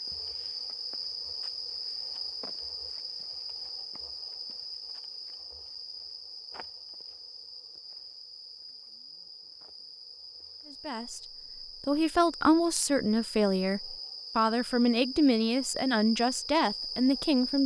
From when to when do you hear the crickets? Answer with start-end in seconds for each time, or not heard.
0.0-17.6.